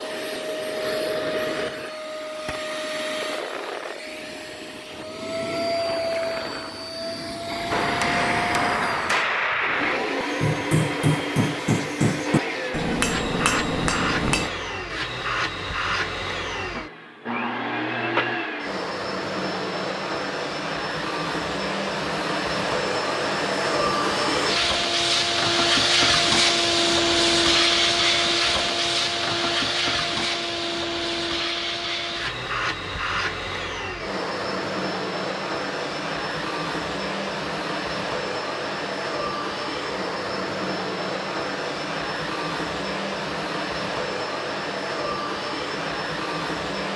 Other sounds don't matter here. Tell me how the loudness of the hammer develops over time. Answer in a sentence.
The volume of the hammer stays about the same.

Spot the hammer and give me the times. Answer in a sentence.
The hammer can be heard from 7.7 to 14.5 s.